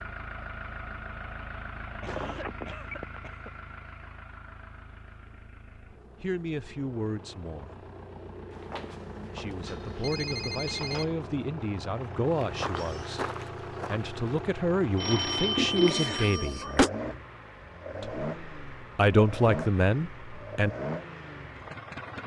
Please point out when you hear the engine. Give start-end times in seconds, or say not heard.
0.0-22.2.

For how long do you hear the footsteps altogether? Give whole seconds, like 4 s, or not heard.
2 s.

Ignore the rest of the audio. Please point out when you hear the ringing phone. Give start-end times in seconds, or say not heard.
2.0-3.2, 8.5-11.1, 14.9-16.9.